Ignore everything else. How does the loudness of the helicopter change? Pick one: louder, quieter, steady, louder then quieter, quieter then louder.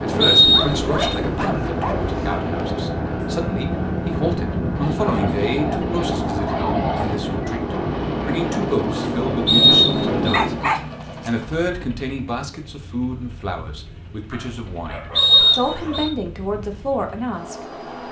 quieter.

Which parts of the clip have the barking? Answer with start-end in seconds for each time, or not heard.
0.5-2.5, 4.8-7.2, 10.3-11.3, 14.3-16.1.